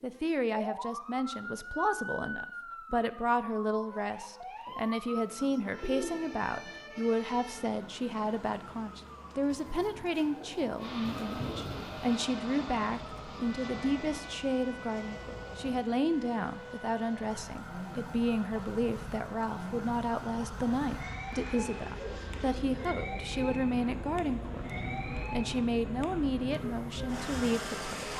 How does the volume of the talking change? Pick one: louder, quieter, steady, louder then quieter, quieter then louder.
steady.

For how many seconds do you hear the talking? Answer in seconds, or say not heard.
28 s.